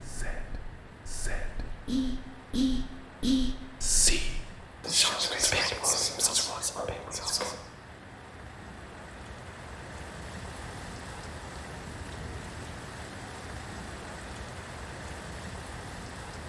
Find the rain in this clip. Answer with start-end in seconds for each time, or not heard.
0.0-16.4.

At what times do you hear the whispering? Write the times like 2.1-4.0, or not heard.
0.0-7.6.